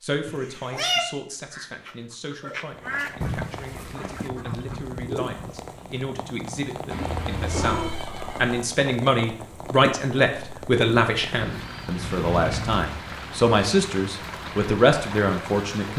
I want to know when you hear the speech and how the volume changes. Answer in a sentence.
You can hear the speech from 0.0 to 15.9 s, getting louder.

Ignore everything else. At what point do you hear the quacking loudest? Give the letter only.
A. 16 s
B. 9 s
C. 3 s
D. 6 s
C.